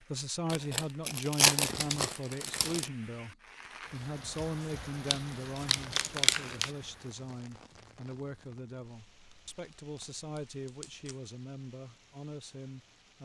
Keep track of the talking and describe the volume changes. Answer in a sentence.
The volume of the talking goes down.